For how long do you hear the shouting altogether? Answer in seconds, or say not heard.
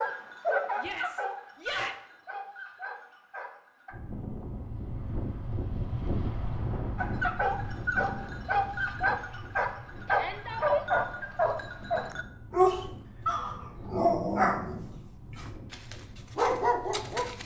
2 s.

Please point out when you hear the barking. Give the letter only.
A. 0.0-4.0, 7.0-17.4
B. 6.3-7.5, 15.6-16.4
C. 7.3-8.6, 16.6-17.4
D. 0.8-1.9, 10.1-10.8
A.